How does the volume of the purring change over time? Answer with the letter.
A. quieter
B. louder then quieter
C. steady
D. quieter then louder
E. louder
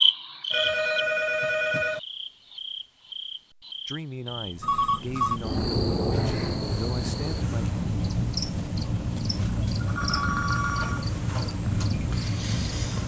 C.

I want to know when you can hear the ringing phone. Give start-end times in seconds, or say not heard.
0.5-2.0, 4.6-5.4, 9.8-11.1.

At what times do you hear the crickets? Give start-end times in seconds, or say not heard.
0.0-13.0.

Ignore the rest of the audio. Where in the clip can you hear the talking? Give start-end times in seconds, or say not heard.
3.9-7.7.